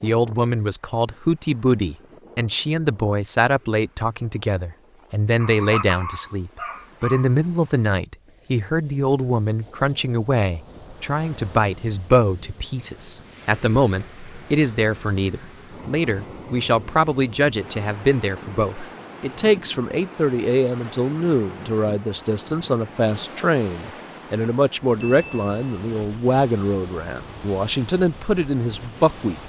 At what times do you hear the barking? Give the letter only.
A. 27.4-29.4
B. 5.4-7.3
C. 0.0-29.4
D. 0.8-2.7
B.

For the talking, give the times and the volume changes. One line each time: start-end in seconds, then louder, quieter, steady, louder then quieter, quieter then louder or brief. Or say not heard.
0.0-29.4 steady.